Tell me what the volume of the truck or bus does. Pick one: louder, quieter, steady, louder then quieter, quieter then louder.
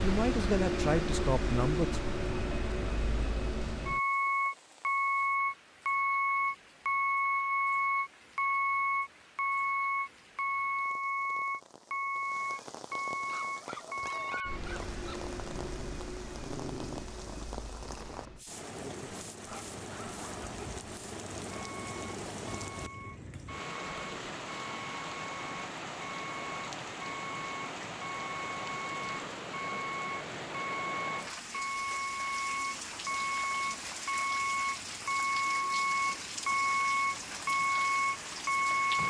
quieter then louder.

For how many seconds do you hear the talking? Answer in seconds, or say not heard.
2 s.